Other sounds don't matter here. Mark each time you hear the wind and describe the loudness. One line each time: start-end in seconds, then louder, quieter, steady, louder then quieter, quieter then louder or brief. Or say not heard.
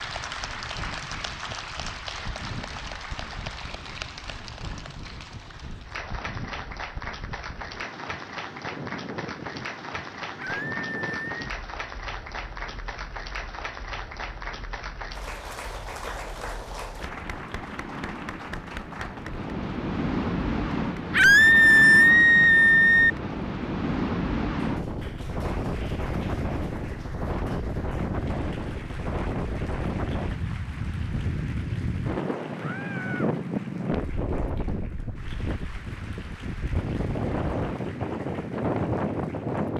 0.0-39.7 louder.